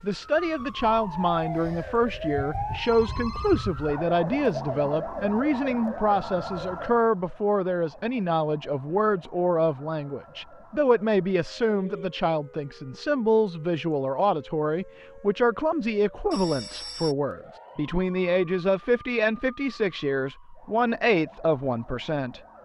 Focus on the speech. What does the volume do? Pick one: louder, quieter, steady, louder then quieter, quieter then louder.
steady.